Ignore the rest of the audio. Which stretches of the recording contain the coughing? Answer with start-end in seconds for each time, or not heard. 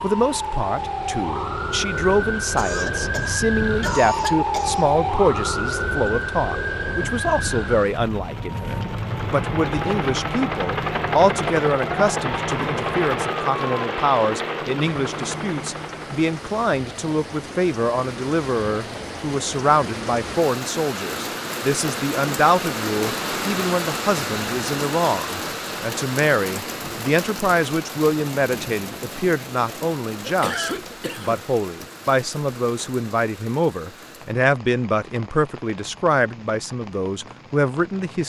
2.5-4.9, 30.2-31.4.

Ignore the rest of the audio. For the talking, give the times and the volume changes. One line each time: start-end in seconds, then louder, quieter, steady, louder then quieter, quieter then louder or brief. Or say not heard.
0.0-38.2 steady.